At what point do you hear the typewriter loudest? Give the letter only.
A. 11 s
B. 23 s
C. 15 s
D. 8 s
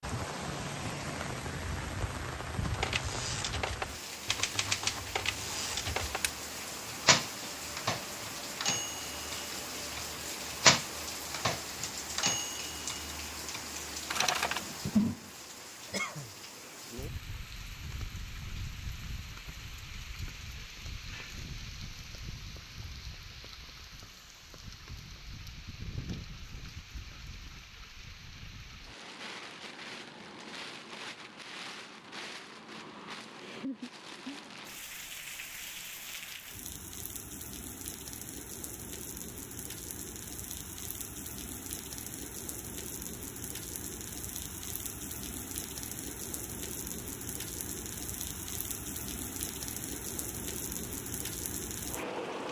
A.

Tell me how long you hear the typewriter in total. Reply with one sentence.
The typewriter can be heard for 12 seconds in total.